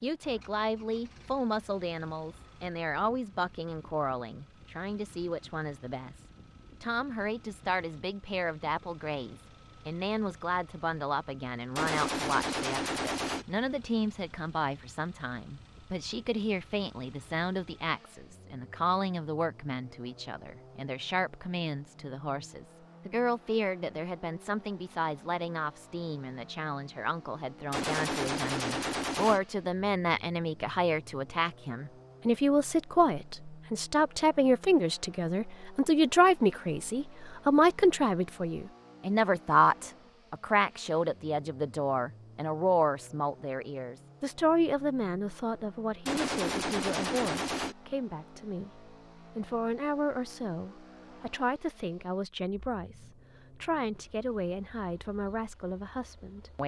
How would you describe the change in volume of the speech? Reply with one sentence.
The volume of the speech goes up, then down.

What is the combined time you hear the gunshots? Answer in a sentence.
You can hear the gunshots for 5 seconds altogether.